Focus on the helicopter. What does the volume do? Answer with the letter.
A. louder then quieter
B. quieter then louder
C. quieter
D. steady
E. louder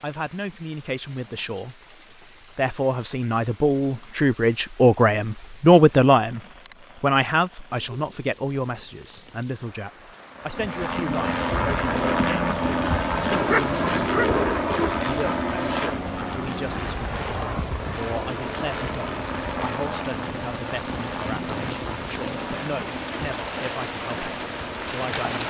C.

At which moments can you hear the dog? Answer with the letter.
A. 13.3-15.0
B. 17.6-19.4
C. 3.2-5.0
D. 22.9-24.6
A.